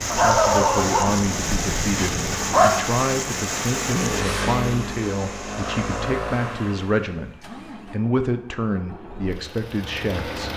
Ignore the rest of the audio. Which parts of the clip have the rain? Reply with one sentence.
The rain can be heard from 0.0 to 6.1 s.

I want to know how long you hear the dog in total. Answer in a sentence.
You can hear the dog for 3 seconds altogether.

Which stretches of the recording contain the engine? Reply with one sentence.
The engine can be heard from 0.0 to 10.5 s.